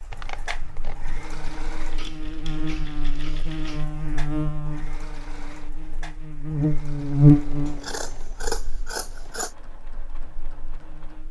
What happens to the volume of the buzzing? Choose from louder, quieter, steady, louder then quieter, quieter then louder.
louder then quieter.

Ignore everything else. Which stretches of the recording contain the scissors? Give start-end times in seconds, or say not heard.
0.1-1.0, 7.7-9.6.